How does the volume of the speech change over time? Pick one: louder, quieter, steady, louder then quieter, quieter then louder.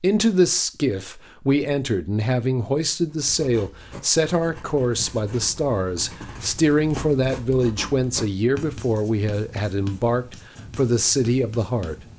steady.